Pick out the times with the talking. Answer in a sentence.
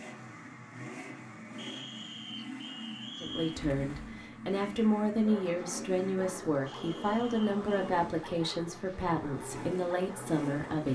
You can hear the talking from 3.2 to 10.8 s.